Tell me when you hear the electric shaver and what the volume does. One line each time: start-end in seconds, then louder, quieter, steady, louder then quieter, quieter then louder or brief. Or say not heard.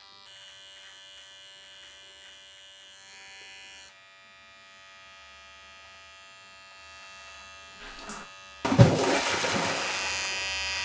0.0-10.8 louder.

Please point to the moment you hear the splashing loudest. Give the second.
9 s.